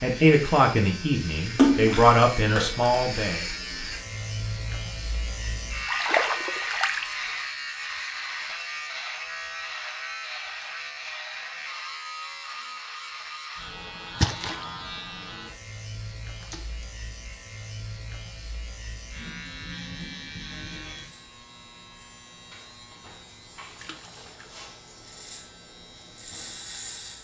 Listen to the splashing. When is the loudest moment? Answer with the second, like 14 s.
2 s.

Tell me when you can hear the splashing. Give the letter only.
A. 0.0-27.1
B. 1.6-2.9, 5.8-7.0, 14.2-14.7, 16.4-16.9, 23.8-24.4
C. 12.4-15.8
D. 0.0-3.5
B.